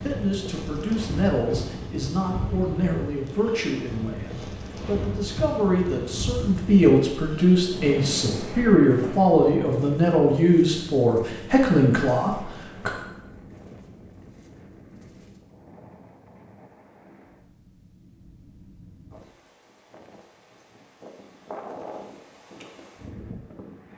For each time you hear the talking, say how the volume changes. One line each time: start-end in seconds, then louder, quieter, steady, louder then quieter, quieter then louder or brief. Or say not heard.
0.0-12.9 louder.